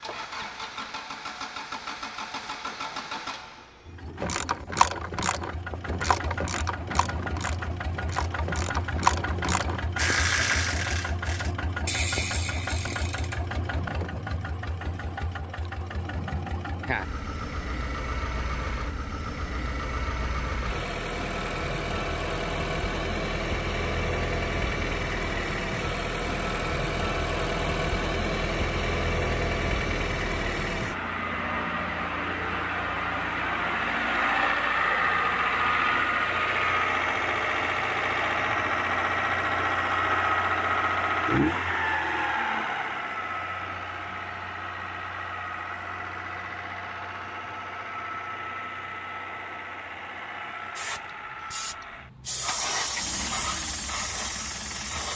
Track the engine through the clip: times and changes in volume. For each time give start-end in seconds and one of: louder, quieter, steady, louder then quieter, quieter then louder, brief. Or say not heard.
0.0-55.1 louder then quieter.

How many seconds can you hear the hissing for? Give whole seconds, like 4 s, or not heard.
4 s.